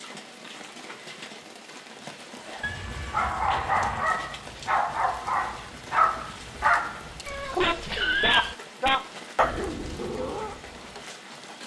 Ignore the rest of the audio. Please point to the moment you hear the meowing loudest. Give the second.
8 s.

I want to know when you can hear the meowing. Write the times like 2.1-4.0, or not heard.
2.6-4.1, 7.2-8.6.